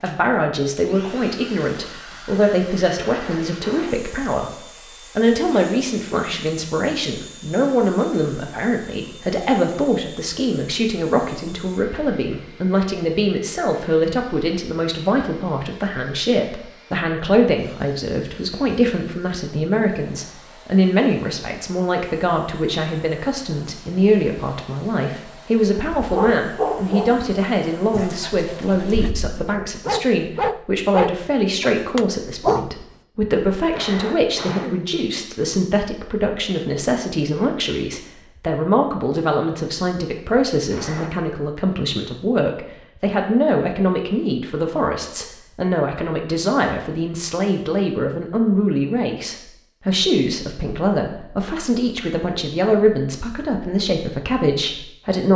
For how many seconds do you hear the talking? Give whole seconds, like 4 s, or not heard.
55 s.